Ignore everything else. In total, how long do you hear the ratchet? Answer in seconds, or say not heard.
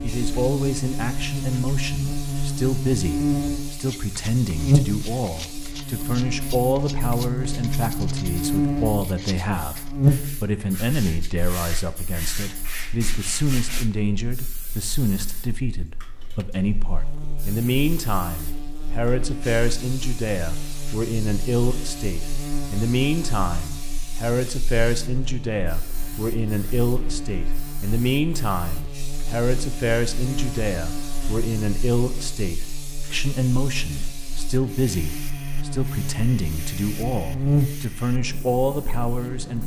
not heard.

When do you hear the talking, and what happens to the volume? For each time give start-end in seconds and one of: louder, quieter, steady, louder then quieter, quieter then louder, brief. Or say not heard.
0.0-39.6 steady.